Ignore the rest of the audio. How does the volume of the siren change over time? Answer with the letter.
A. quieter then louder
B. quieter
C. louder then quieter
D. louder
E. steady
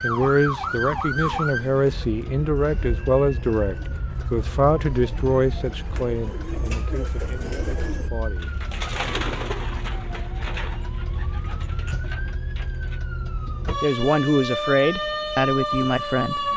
A.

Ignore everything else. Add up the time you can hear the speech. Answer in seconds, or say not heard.
11 s.